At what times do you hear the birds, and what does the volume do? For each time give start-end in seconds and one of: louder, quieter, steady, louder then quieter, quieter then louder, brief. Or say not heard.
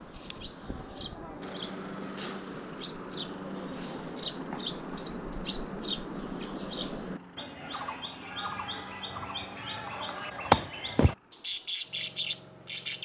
0.0-12.9 louder.